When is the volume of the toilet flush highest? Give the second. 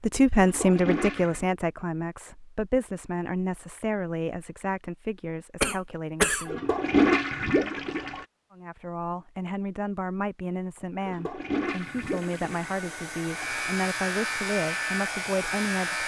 7 s.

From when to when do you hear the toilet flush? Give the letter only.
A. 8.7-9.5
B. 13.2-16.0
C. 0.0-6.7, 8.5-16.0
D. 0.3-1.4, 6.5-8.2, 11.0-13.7
D.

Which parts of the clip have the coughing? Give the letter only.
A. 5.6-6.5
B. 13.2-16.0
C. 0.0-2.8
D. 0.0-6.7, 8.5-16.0
A.